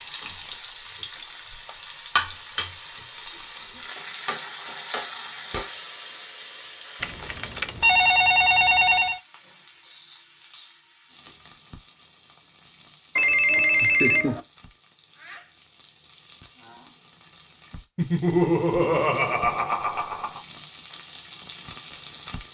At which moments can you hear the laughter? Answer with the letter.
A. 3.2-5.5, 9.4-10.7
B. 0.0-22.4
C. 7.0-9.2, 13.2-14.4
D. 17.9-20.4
D.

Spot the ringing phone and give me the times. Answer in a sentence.
The ringing phone can be heard from 7.0 to 9.2 s and from 13.2 to 14.4 s.